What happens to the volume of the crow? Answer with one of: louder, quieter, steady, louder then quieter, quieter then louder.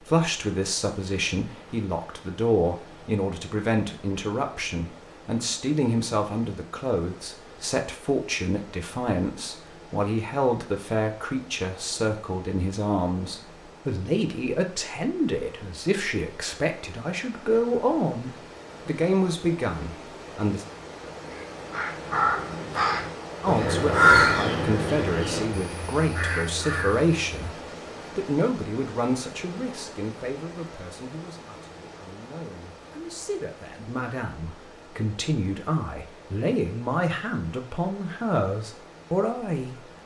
louder then quieter.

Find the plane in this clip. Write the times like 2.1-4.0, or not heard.
not heard.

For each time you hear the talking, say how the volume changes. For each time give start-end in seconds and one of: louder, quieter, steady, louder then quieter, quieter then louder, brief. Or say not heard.
0.0-20.6 steady
23.4-39.8 quieter then louder.